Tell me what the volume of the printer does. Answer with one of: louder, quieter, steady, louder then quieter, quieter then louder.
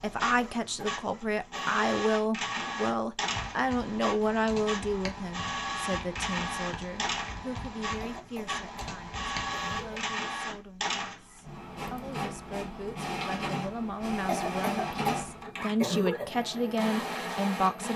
steady.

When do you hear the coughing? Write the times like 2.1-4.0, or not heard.
0.2-1.8, 8.0-9.9, 14.2-15.2, 15.8-16.3.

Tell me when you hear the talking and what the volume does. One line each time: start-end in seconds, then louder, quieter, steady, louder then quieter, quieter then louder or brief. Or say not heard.
0.0-17.9 quieter then louder.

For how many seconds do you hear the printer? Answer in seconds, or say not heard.
18 s.